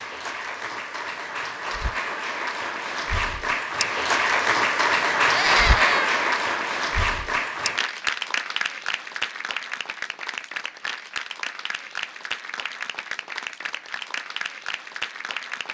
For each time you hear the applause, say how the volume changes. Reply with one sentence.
The applause can be heard from 0.0 to 15.6 s, getting louder then quieter.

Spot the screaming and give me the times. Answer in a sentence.
You can hear the screaming from 5.3 to 6.2 s.